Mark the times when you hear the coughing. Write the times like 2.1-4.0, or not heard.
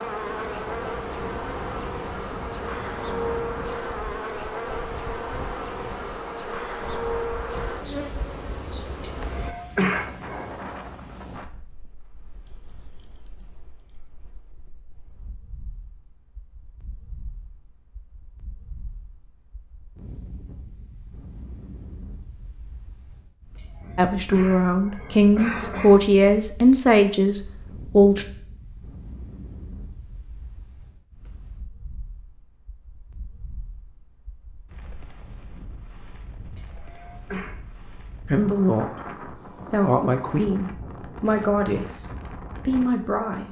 9.1-10.4, 23.6-26.0, 36.5-37.5.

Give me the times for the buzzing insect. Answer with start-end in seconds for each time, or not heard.
0.0-9.6.